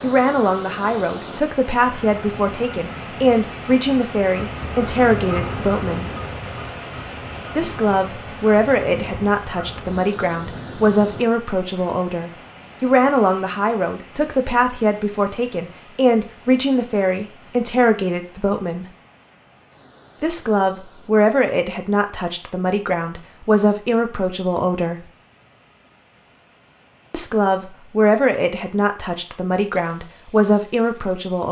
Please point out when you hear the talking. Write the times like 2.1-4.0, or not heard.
0.0-6.1, 7.5-18.9, 20.2-25.1, 27.1-31.4.